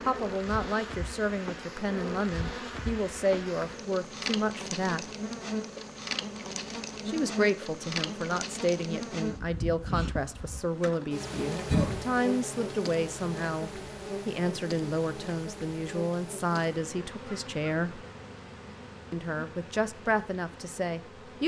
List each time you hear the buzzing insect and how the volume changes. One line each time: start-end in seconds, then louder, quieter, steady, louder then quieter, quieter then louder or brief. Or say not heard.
0.0-21.4 quieter.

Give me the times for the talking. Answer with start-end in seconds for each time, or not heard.
0.0-5.0, 7.0-18.1, 19.1-21.4.